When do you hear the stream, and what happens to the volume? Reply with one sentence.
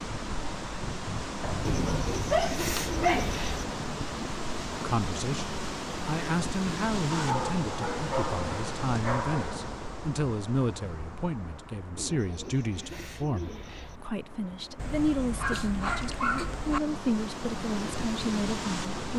The stream can be heard from 0.0 to 19.1 s, getting quieter then louder.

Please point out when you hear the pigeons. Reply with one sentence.
You can hear the pigeons from 1.6 to 3.6 s and from 11.9 to 14.0 s.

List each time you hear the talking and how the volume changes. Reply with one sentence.
The talking can be heard from 4.7 to 19.1 s, at a steady volume.